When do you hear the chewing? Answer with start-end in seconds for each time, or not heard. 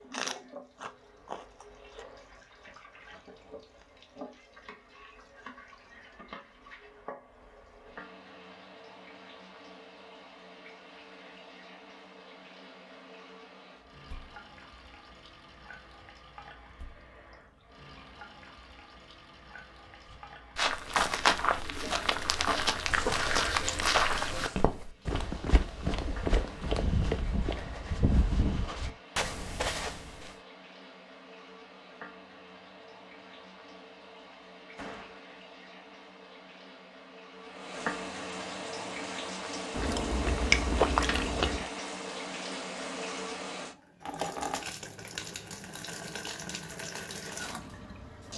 0.1-2.0, 22.9-24.6, 39.7-41.7.